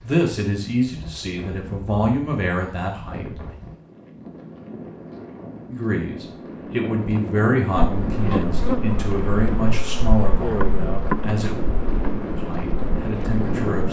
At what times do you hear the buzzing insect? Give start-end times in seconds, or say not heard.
7.8-13.8.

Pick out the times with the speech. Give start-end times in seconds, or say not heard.
0.0-3.2, 5.7-11.7, 12.3-13.8.